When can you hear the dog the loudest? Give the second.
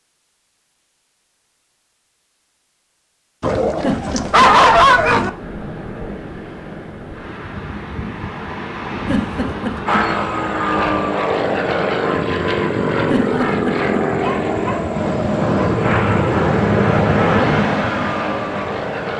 5 s.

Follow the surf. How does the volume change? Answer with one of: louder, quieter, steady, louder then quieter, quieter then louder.
louder.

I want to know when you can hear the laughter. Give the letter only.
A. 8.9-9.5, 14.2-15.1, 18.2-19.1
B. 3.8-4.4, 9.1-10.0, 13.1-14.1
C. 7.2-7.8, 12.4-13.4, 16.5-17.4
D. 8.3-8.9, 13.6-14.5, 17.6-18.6
B.